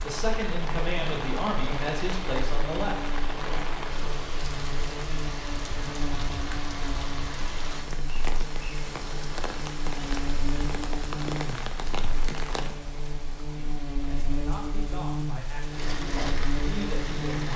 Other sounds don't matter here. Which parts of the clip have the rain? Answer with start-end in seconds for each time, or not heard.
0.0-17.5.